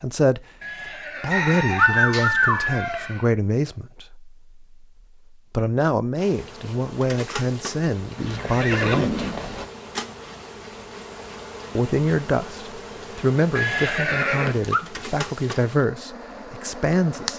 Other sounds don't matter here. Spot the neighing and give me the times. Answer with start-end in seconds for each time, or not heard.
0.6-3.2, 8.2-9.7, 13.6-14.8.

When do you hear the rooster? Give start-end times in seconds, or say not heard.
1.3-3.0.